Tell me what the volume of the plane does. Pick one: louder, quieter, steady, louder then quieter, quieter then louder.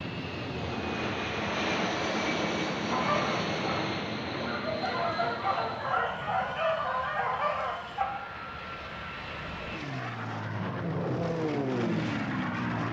quieter then louder.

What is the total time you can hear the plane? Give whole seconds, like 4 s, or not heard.
13 s.